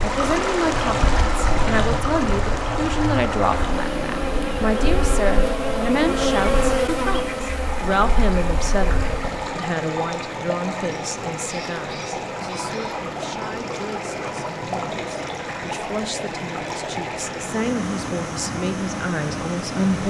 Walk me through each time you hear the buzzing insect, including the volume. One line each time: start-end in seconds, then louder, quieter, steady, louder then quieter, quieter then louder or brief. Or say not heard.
0.0-9.4 louder then quieter.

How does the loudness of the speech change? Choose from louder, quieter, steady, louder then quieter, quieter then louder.
quieter then louder.